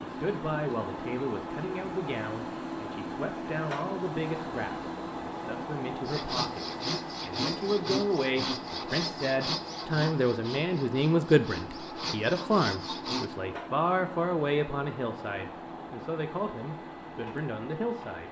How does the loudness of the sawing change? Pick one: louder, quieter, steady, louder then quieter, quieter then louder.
quieter then louder.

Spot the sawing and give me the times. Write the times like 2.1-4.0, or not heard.
6.0-13.3.